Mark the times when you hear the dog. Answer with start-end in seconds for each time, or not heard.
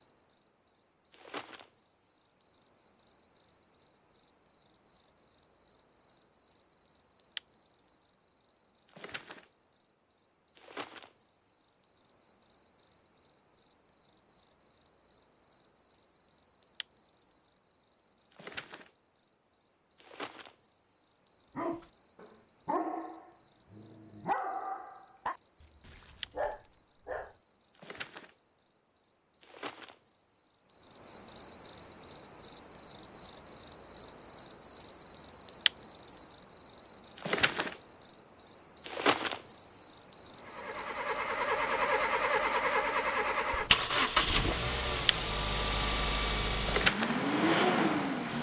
21.6-27.4.